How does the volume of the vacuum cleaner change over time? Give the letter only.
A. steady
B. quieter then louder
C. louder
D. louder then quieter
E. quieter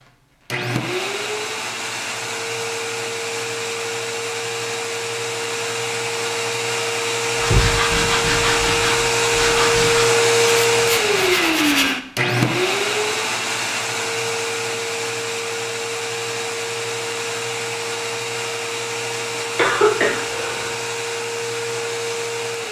D.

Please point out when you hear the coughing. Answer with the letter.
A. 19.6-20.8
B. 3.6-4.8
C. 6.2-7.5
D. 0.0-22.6
A.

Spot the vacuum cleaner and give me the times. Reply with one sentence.
You can hear the vacuum cleaner from 0.0 to 22.6 s.